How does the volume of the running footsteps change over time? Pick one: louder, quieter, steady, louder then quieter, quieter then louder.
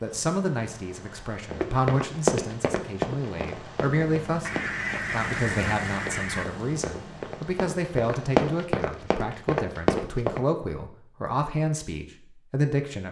quieter then louder.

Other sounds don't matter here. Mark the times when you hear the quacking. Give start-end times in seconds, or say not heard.
4.4-6.5.